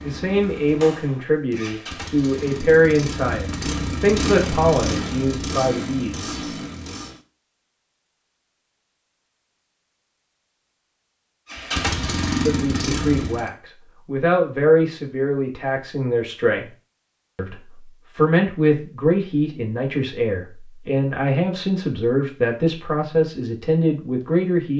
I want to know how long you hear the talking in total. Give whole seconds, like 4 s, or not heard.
18 s.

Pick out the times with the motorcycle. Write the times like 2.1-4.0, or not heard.
0.0-7.2, 11.4-13.5.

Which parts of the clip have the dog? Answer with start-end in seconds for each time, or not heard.
not heard.